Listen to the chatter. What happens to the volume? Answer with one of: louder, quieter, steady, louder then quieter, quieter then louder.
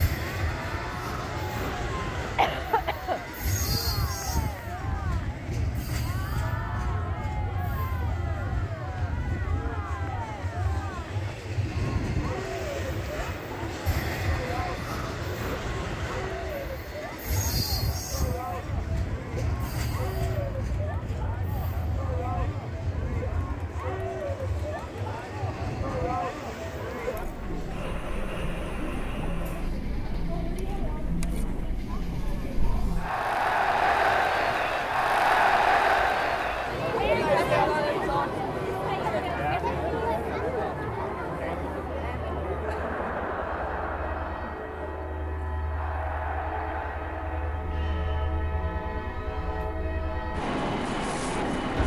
louder then quieter.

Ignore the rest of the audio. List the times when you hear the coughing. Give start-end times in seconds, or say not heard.
1.6-3.2.